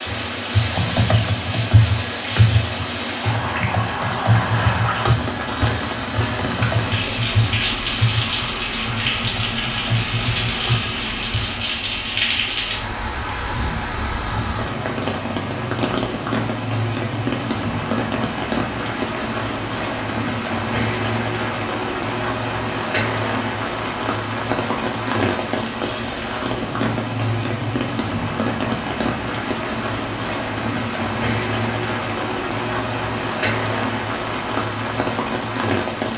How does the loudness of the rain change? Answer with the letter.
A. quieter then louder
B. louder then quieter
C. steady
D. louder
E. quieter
C.